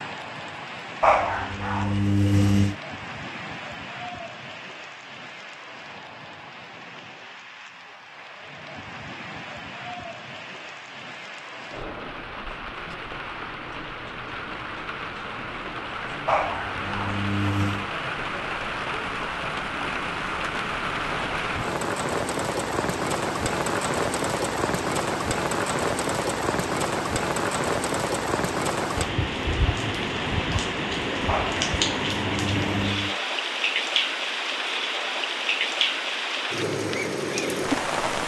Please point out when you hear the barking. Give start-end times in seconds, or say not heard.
1.0-2.8, 16.2-17.9, 31.2-33.2.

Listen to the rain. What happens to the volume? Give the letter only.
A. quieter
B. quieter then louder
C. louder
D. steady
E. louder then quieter
C.